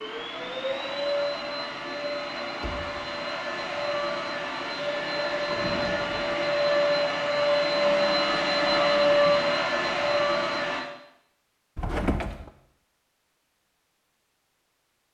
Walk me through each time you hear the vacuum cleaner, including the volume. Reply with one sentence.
The vacuum cleaner can be heard from 0.0 to 10.8 s, getting louder.